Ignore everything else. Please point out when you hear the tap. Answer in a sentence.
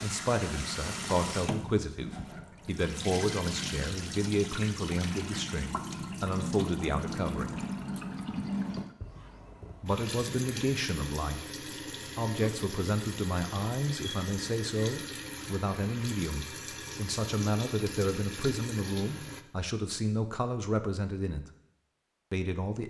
The tap can be heard from 0.0 to 19.4 s.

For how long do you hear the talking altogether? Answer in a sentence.
The talking can be heard for 19 seconds in total.